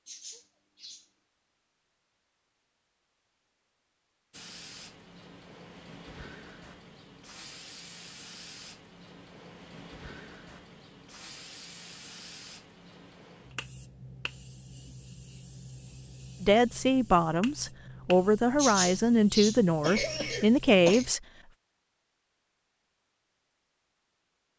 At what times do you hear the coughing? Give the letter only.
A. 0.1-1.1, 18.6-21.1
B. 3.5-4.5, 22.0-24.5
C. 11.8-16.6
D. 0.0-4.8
A.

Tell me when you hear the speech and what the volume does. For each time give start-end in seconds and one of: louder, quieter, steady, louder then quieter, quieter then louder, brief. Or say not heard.
16.4-21.2 steady.